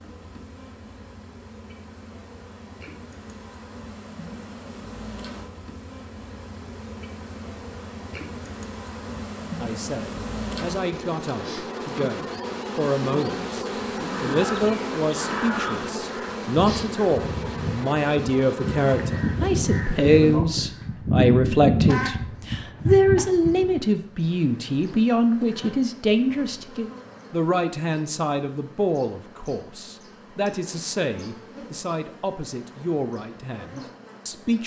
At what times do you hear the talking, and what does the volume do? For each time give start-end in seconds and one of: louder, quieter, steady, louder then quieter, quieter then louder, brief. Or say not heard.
9.6-34.6 louder then quieter.